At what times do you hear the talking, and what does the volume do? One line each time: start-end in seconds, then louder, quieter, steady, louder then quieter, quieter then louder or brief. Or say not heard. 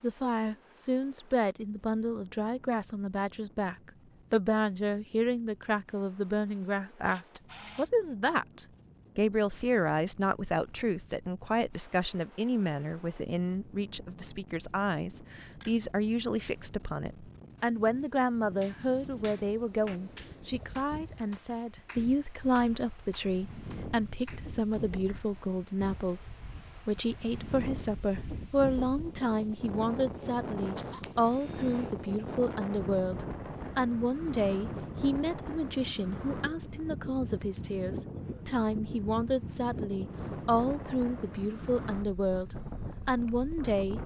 0.0-44.0 steady.